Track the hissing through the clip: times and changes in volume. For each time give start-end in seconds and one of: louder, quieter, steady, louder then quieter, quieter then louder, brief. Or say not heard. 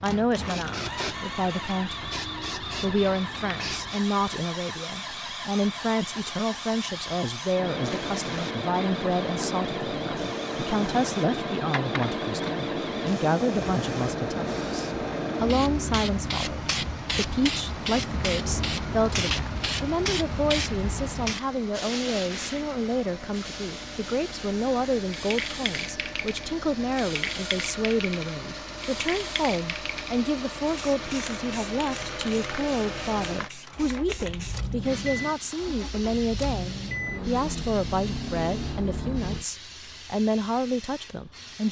0.0-41.6 louder then quieter.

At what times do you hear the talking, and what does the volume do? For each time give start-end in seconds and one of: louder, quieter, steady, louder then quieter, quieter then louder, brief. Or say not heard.
0.0-41.6 steady.